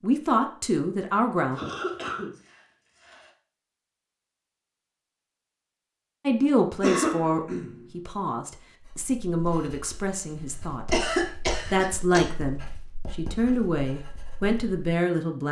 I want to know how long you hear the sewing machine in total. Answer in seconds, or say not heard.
not heard.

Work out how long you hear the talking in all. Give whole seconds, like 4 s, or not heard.
11 s.